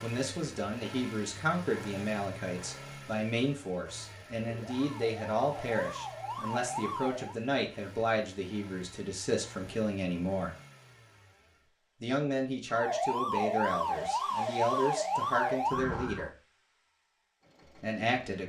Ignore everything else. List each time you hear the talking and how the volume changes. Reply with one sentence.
You can hear the talking from 0.0 to 10.6 s, at a steady volume; from 12.0 to 16.3 s, getting quieter then louder; and briefly from 17.6 to 18.4 s.